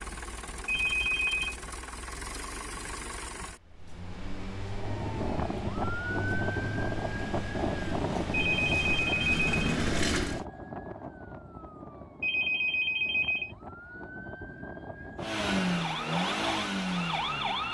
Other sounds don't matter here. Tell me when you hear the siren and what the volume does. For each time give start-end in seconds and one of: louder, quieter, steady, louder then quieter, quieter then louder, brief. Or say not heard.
4.8-17.6 quieter then louder.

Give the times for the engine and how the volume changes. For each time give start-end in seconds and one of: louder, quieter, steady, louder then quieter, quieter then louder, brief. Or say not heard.
0.0-10.4 louder
15.2-17.6 brief.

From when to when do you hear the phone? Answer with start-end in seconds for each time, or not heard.
0.7-1.6, 8.3-9.6, 12.2-13.6.